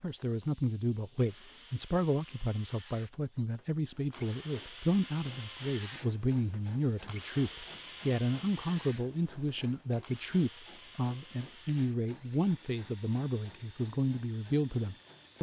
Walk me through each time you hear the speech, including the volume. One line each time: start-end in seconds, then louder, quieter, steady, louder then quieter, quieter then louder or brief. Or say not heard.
0.0-15.3 steady.